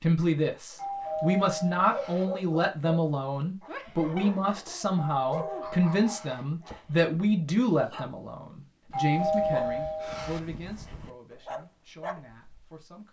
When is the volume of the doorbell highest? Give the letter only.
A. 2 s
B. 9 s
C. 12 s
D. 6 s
B.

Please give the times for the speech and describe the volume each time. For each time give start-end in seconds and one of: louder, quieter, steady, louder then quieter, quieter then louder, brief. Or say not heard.
0.0-13.0 quieter.